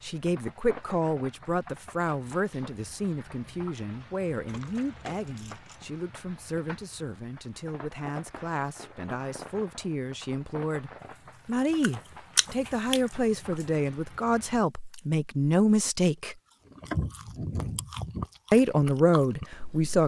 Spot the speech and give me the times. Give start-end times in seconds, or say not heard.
0.0-16.4, 18.5-20.0.